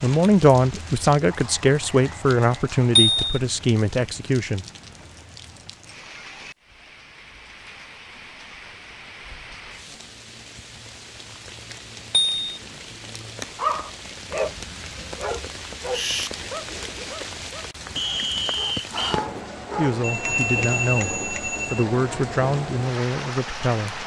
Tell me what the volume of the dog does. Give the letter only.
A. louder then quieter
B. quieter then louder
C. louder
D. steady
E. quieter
B.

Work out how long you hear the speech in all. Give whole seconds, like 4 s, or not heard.
9 s.